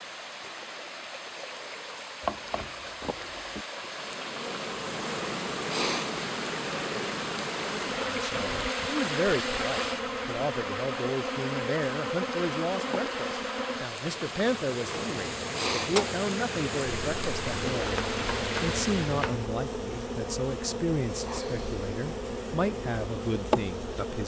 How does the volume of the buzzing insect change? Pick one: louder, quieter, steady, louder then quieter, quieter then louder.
steady.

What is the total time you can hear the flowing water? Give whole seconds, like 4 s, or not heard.
19 s.